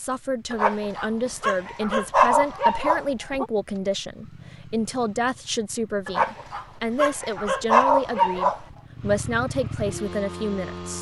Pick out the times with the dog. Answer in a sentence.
You can hear the dog from 0.5 to 3.5 s and from 6.0 to 8.6 s.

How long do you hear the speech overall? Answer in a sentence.
The speech can be heard for 11 seconds in total.